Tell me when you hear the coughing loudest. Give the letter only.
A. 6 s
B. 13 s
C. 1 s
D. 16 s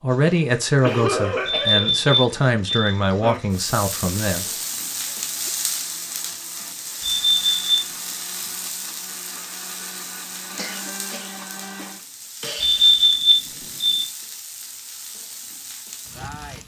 C.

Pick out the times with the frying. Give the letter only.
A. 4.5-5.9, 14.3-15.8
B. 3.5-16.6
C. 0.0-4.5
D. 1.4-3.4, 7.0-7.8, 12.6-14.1
B.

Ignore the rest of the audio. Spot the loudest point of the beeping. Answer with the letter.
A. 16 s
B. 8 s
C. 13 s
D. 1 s
C.